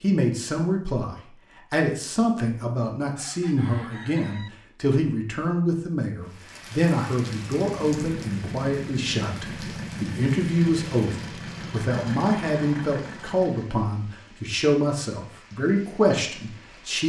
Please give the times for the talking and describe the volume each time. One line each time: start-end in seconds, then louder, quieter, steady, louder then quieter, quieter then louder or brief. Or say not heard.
0.0-17.0 steady.